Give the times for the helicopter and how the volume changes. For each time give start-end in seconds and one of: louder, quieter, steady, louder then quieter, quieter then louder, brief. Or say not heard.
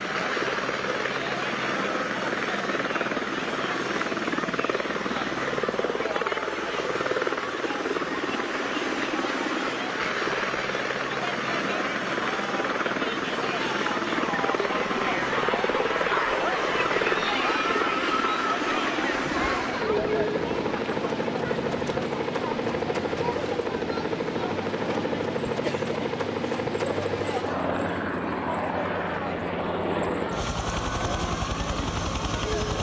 0.0-32.7 steady.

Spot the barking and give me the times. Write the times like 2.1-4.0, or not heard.
not heard.